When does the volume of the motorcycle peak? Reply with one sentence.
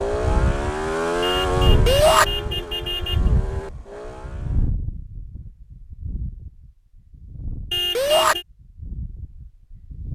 The volume of the motorcycle peaks at 1 second.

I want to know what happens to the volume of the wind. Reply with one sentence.
The volume of the wind goes down.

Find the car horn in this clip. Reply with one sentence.
You can hear the car horn from 1.2 to 3.3 s and from 7.7 to 8.4 s.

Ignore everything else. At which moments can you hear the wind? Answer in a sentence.
You can hear the wind from 0.1 to 10.1 s.